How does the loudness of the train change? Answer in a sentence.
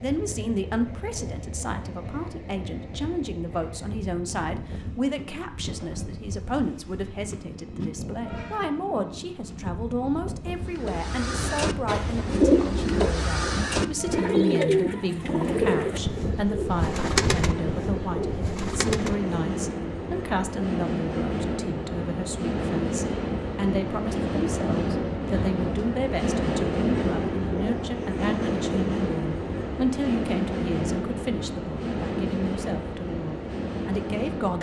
The loudness of the train goes up.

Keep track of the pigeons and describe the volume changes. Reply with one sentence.
The loudness of the pigeons goes down.